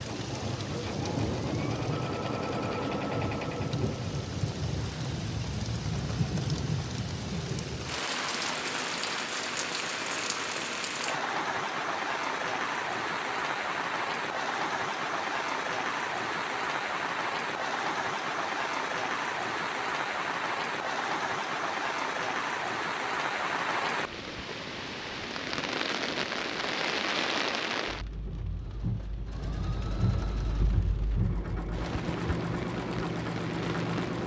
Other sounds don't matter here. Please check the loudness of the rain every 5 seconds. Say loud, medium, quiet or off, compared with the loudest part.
loud, loud, loud, loud, loud, loud, medium.